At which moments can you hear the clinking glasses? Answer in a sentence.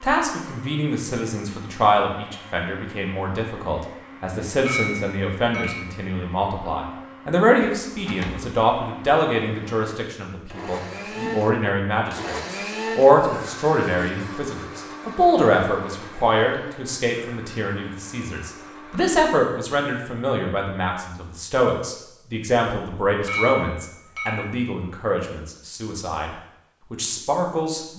The clinking glasses can be heard from 4.7 to 5.8 s and from 23.2 to 24.6 s.